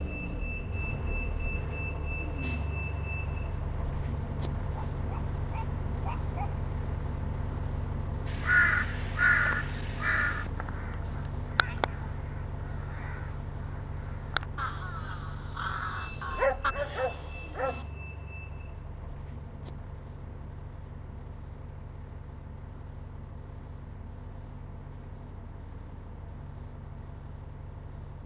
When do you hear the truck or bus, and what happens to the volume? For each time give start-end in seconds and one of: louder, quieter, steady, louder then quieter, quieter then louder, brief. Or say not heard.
0.0-28.2 quieter.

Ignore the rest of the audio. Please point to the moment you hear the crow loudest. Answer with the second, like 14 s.
9 s.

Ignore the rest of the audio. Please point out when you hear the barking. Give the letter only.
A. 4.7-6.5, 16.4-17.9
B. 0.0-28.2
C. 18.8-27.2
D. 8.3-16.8
A.